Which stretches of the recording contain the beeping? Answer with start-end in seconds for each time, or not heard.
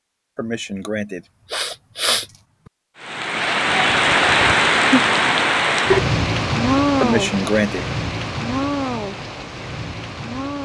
not heard.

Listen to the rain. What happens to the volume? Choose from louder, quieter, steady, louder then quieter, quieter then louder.
quieter.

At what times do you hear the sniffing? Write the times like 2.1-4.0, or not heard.
0.3-2.2, 7.0-7.8.